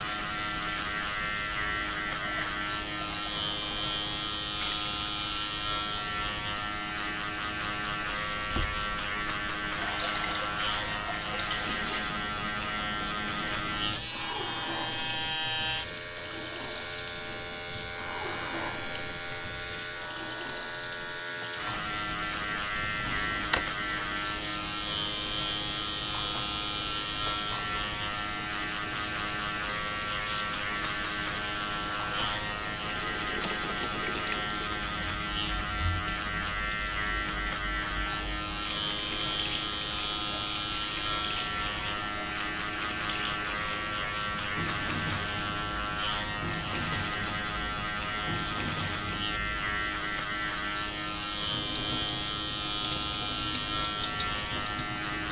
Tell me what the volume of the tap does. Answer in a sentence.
The volume of the tap stays about the same.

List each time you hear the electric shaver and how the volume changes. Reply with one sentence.
You can hear the electric shaver from 0.0 to 55.2 s, at a steady volume.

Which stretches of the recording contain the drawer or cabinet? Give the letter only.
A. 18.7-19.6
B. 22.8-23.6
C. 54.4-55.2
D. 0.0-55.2
B.